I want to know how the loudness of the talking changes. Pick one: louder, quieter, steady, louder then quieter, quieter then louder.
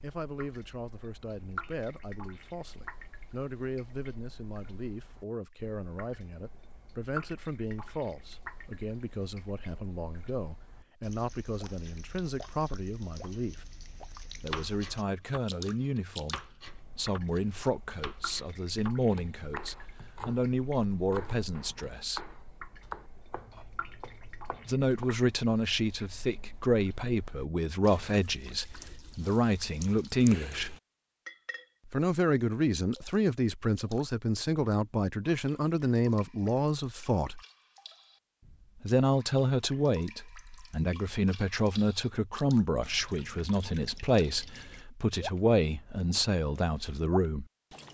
louder.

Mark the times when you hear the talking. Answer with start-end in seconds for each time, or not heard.
0.0-13.7, 14.3-22.2, 24.6-30.8, 31.9-37.4, 38.8-47.5.